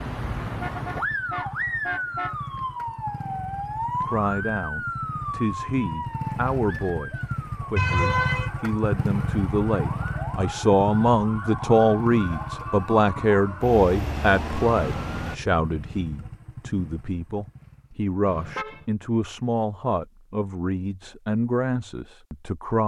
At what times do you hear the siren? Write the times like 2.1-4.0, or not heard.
0.0-15.4.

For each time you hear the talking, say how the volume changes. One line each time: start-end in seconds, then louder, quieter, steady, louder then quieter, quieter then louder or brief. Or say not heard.
4.0-22.8 louder then quieter.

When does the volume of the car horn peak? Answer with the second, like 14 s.
8 s.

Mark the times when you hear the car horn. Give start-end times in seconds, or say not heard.
0.5-2.4, 7.8-8.5, 18.2-18.9.